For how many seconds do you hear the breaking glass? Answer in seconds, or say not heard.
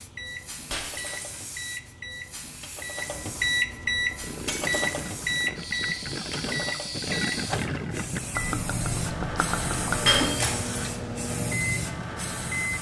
2 s.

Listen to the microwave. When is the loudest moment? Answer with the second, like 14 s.
4 s.